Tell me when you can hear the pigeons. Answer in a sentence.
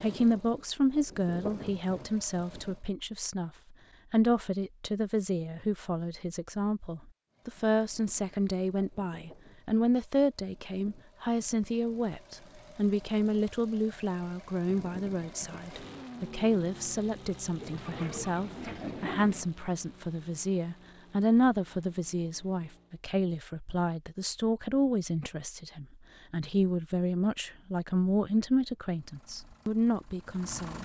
The pigeons can be heard from 17.6 to 19.5 s.